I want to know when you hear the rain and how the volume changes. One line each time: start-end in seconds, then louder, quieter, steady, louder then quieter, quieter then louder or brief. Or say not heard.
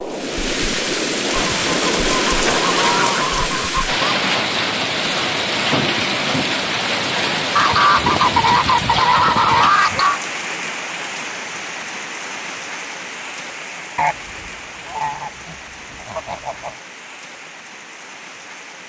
0.0-18.8 quieter.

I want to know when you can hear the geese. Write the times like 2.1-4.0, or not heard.
1.3-4.2, 7.5-10.2, 13.9-16.8.